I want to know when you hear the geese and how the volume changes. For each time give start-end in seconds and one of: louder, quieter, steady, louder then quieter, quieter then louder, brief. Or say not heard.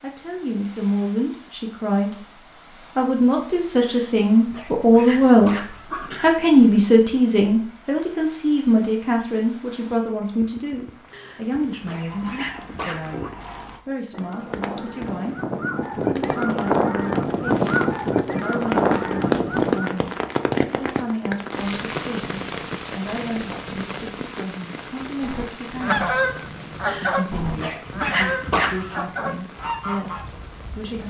11.9-20.0 louder
25.2-31.0 quieter.